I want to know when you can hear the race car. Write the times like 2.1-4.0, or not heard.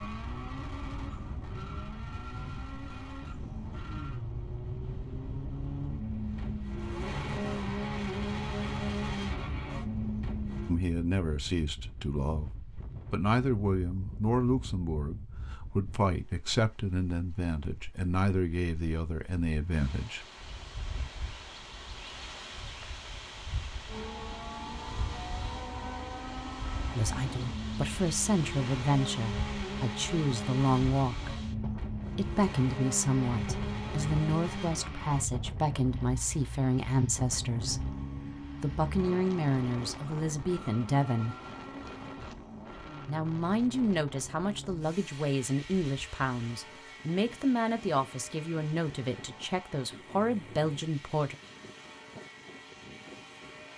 0.0-10.8, 23.9-53.7.